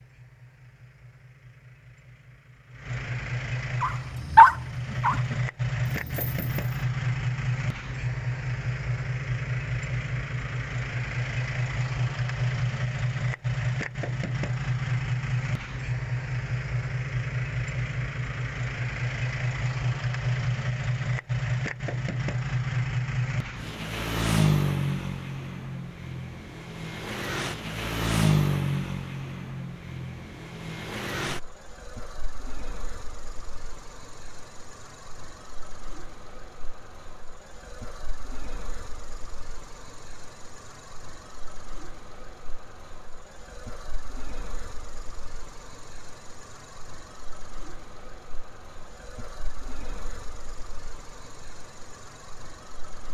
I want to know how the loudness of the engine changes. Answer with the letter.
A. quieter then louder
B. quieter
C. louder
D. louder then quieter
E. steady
B.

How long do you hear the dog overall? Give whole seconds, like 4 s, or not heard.
3 s.